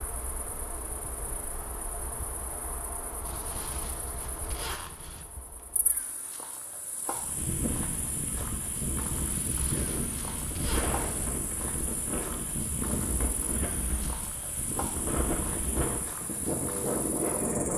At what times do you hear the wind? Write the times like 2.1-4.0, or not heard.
7.1-17.7.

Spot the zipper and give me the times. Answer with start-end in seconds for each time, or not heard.
3.2-5.2, 9.3-11.3.